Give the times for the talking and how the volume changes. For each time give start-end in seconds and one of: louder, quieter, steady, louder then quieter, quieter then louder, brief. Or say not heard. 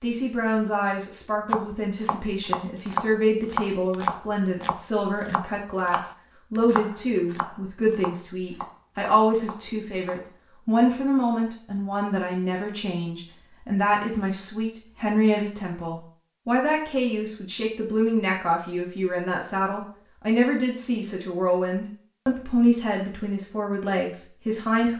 0.0-24.9 steady.